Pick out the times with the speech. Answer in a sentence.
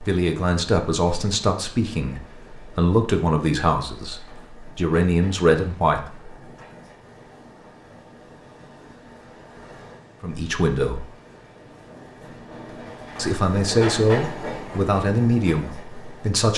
You can hear the speech from 0.0 to 6.3 s, from 10.2 to 11.1 s and from 13.2 to 16.5 s.